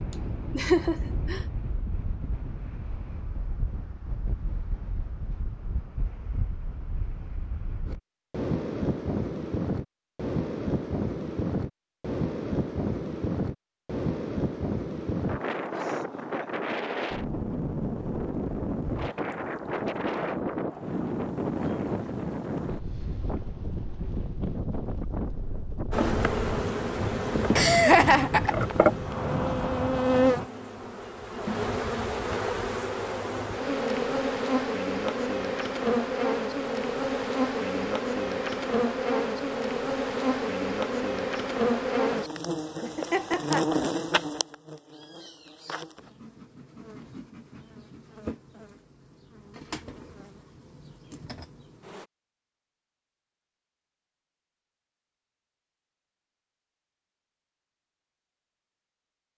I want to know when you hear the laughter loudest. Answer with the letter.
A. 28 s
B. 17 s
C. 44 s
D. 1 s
A.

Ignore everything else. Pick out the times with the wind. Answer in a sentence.
The wind can be heard from 0.0 to 30.5 s.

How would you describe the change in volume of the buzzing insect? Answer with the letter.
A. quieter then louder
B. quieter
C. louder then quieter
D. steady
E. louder
B.